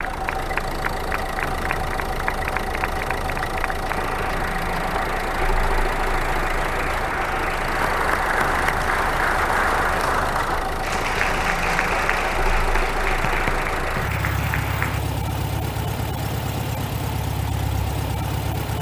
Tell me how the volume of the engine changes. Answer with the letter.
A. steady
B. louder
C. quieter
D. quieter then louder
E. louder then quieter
A.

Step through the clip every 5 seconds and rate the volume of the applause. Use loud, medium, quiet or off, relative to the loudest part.
medium, loud, loud, off.